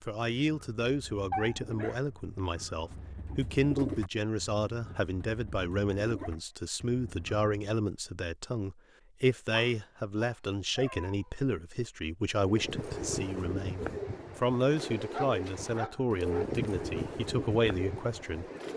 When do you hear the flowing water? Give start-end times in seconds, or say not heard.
not heard.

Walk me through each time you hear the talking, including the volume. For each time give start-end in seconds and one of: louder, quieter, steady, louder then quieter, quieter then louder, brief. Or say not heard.
0.0-18.4 steady.